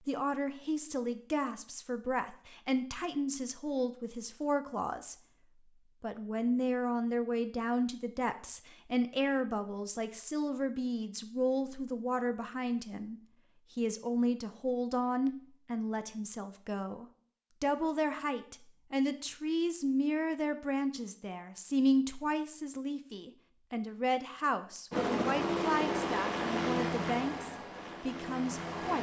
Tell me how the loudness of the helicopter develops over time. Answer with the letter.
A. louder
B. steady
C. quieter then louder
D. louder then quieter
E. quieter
E.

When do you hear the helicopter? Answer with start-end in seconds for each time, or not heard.
24.9-28.9.